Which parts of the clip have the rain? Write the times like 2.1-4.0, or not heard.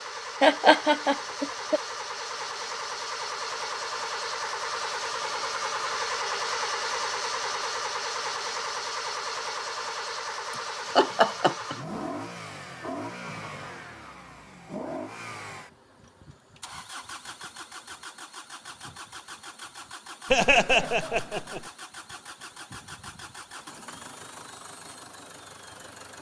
not heard.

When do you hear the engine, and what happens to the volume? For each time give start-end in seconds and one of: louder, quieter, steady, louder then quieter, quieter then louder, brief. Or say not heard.
0.0-26.1 quieter.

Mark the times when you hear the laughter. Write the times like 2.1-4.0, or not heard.
0.4-1.8, 10.5-11.8, 20.3-21.6.